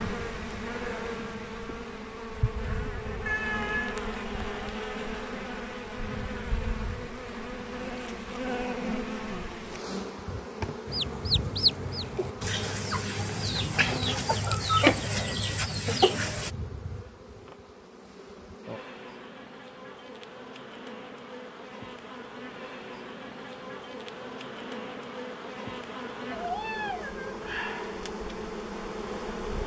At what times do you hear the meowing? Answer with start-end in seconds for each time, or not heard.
3.2-4.0, 26.3-27.4.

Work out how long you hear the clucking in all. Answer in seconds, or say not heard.
6 s.